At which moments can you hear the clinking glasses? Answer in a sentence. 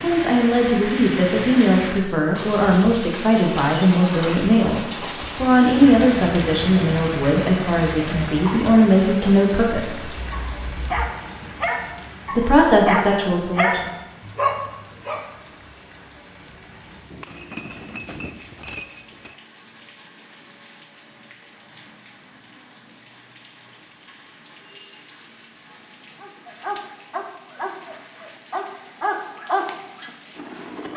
You can hear the clinking glasses from 10.2 to 10.9 s and from 17.1 to 19.4 s.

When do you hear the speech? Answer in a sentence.
The speech can be heard from 0.0 to 10.1 s and from 12.3 to 13.9 s.